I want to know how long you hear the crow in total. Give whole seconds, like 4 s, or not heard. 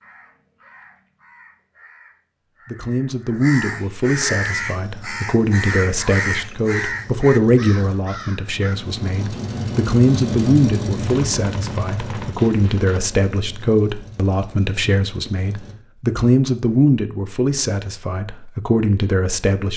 9 s.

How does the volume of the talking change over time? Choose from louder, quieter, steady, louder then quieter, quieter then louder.
steady.